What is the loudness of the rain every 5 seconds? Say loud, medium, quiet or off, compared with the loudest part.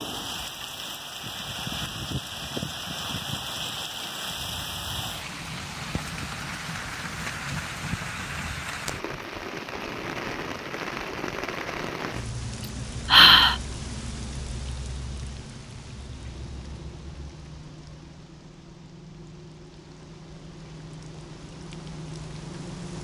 loud, loud, loud, medium, medium.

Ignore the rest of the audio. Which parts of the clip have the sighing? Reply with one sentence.
You can hear the sighing from 12.6 to 13.6 s.